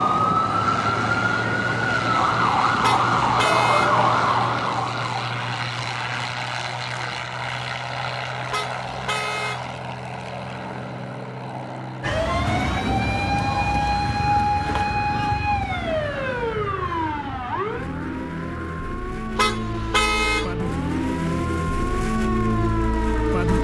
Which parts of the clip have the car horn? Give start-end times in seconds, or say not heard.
2.8-4.0, 8.5-9.7, 19.4-20.6.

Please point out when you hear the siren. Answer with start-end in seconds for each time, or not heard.
0.0-6.3, 12.0-23.5.